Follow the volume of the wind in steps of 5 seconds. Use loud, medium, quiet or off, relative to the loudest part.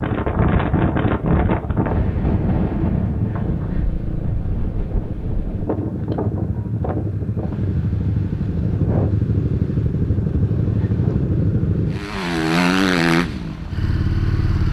loud, medium, quiet.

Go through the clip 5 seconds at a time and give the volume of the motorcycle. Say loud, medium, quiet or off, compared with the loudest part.
medium, loud, loud.